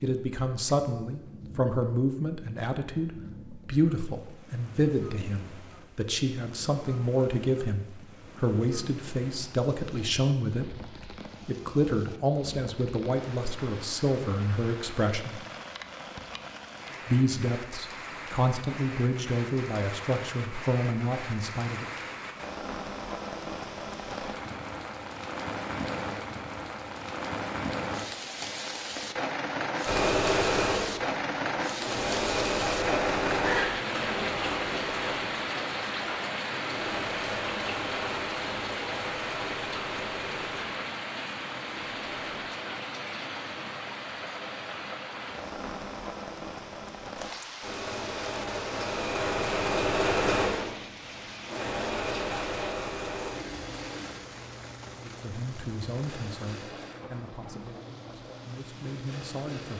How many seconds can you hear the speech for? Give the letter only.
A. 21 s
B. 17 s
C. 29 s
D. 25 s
D.